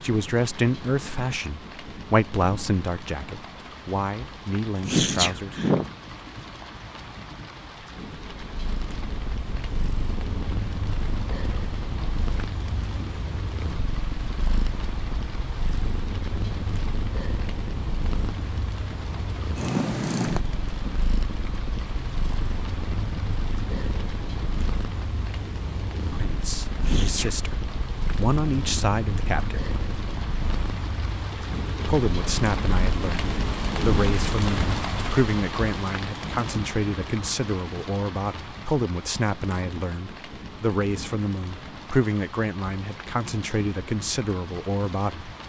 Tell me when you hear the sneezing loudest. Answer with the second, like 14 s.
5 s.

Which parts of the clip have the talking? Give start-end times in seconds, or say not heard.
0.0-5.7, 26.1-29.8, 31.9-45.4.